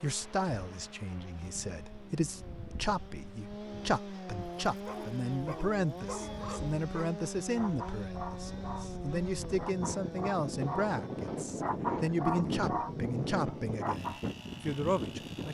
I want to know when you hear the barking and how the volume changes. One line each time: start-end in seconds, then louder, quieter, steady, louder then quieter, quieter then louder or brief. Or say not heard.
4.7-14.2 louder.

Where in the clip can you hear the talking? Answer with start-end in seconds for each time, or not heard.
0.0-15.4.